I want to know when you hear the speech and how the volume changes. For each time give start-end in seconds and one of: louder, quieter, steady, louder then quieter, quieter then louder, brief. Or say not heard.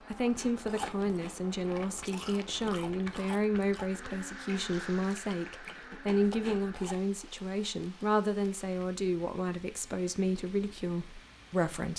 0.1-11.9 steady.